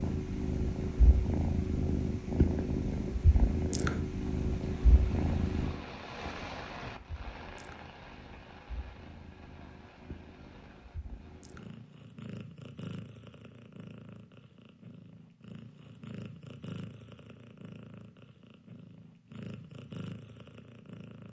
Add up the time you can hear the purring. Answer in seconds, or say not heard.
21 s.